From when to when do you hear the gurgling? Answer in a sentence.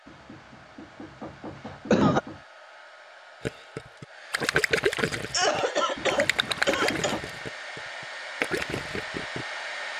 The gurgling can be heard from 3.5 to 9.4 s.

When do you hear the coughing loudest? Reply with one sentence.
The loudest moment of the coughing is at 2 seconds.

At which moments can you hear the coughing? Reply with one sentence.
The coughing can be heard from 1.6 to 2.2 s and from 5.3 to 7.2 s.